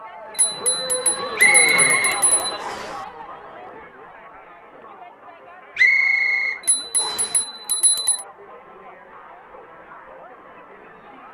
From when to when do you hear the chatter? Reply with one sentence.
The chatter can be heard from 0.0 to 11.2 s.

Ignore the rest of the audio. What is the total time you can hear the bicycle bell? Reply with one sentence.
You can hear the bicycle bell for 4 seconds altogether.